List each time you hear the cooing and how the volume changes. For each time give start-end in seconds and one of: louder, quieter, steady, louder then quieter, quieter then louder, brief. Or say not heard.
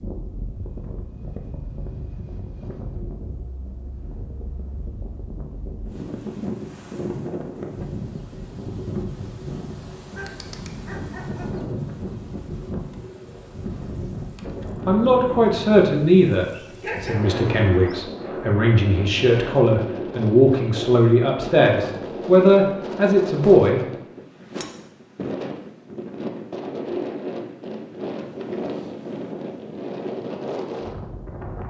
not heard.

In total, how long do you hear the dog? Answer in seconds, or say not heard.
3 s.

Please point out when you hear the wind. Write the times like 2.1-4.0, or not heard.
0.0-31.6.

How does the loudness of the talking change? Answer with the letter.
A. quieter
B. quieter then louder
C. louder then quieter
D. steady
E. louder
B.